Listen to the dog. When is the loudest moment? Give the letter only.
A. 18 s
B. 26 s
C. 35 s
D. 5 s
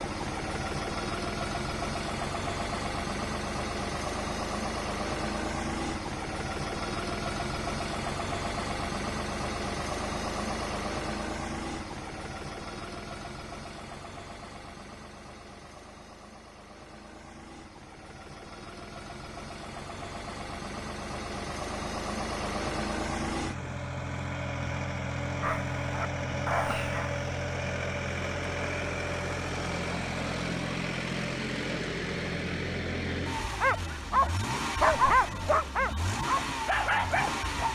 C.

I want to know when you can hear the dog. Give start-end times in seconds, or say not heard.
25.4-27.2, 33.6-37.7.